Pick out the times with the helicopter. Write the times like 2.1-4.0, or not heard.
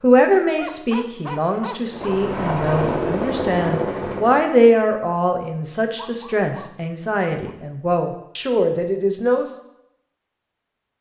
1.9-4.5.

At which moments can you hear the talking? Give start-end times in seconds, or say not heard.
0.0-9.5.